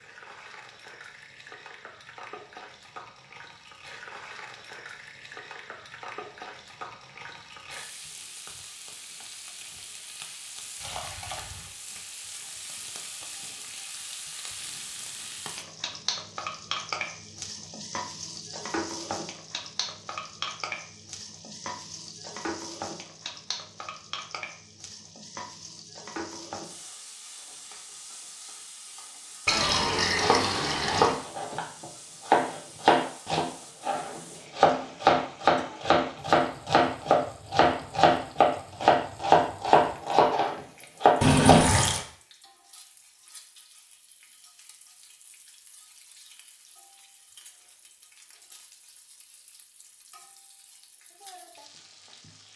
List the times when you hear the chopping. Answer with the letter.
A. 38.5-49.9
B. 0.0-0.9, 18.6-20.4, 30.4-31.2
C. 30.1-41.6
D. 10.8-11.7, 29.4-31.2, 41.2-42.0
C.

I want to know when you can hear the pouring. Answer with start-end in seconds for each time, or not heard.
10.8-11.7, 29.4-31.2, 41.2-42.0.